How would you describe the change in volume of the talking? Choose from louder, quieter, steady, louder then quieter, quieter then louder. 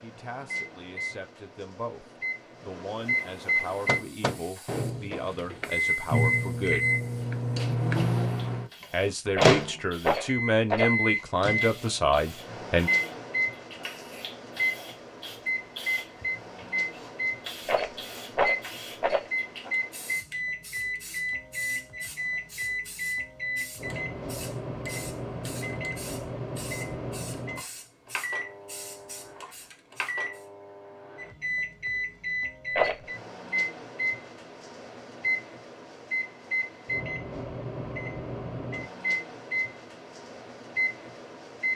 louder.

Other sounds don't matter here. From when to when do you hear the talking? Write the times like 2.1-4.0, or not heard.
0.0-6.9, 8.9-12.9.